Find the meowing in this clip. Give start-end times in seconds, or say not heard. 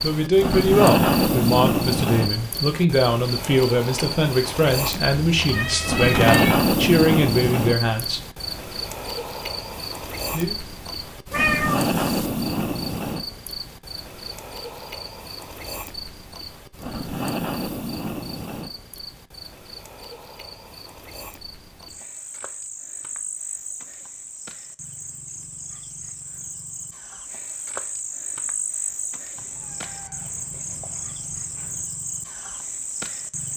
5.3-6.6, 11.3-12.3, 29.4-31.9.